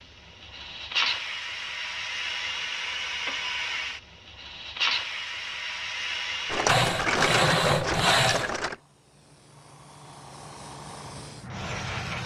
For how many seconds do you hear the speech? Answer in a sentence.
You can't hear the speech here.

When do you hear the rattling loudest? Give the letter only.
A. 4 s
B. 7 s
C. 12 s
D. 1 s
B.